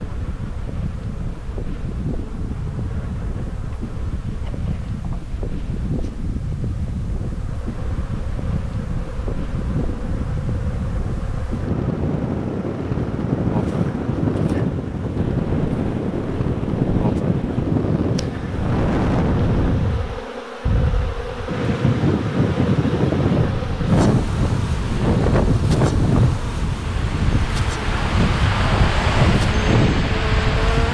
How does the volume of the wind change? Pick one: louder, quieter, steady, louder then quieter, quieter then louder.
louder.